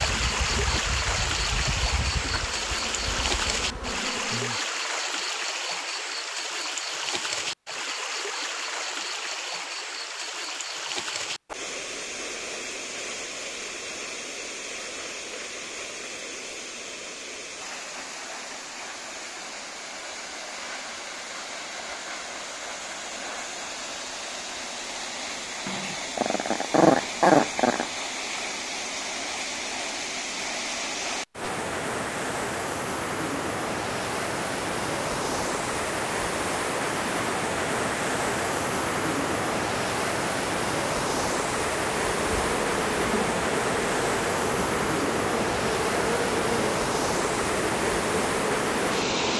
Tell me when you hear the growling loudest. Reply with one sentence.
The volume of the growling peaks at 27 seconds.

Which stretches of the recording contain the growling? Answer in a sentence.
You can hear the growling from 25.6 to 27.9 s.